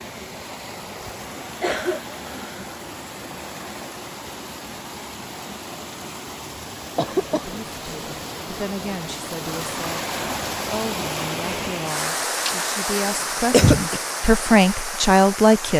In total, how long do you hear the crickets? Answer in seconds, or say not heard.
not heard.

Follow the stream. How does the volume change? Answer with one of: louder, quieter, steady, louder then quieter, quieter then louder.
louder.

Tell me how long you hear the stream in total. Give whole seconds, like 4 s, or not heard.
16 s.